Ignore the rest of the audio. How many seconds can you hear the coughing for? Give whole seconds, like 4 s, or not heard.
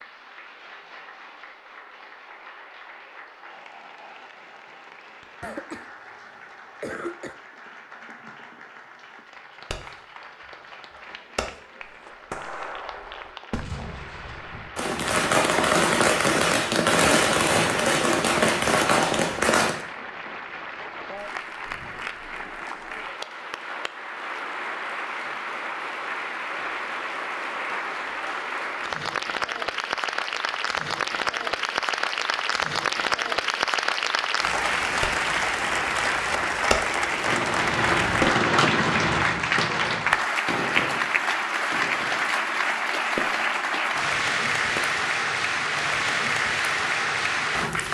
2 s.